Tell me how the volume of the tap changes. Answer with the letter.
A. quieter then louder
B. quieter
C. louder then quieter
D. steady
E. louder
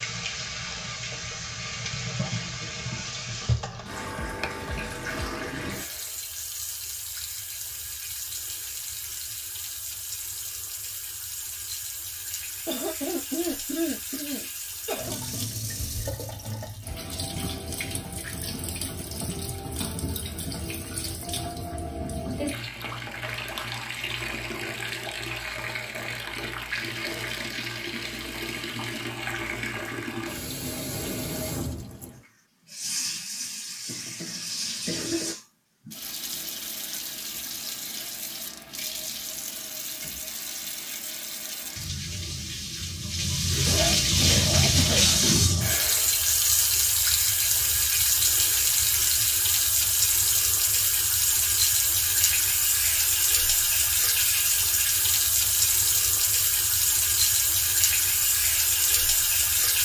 E.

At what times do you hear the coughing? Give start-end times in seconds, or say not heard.
12.7-15.2, 33.9-35.4, 43.2-45.2.